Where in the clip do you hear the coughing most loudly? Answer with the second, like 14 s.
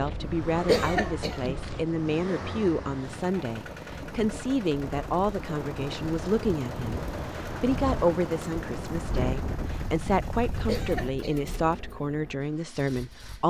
1 s.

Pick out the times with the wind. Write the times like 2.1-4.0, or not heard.
0.0-11.1.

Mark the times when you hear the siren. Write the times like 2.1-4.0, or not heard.
not heard.